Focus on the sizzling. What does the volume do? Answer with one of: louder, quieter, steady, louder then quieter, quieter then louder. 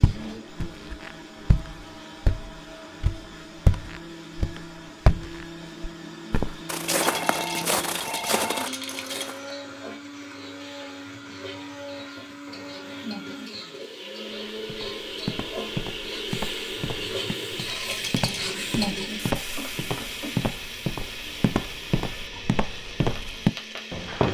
louder then quieter.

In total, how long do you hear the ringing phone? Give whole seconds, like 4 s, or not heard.
2 s.